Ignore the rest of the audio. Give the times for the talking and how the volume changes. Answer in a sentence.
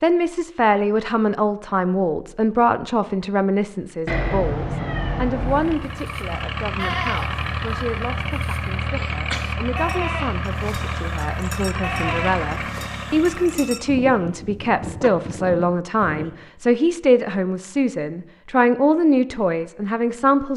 The talking can be heard from 0.0 to 20.5 s, getting quieter then louder.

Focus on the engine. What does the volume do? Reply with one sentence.
The loudness of the engine stays about the same.